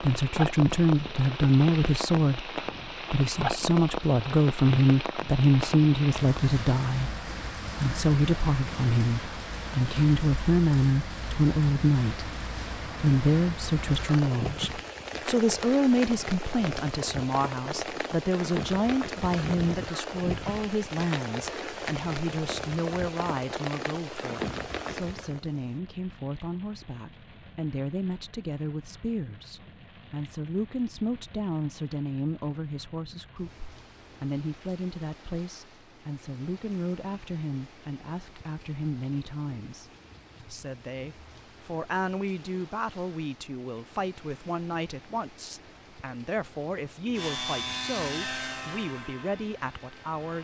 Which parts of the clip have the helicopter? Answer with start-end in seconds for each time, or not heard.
47.1-50.3.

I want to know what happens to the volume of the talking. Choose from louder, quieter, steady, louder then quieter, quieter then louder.
quieter.